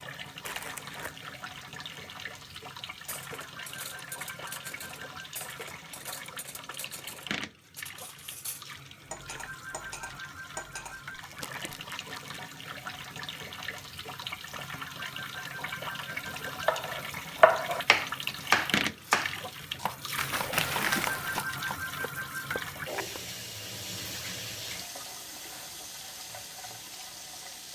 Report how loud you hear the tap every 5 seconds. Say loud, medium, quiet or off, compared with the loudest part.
medium, medium, medium, loud, loud, medium.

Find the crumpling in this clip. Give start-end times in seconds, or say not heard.
0.5-1.2, 11.1-12.4, 20.1-21.4.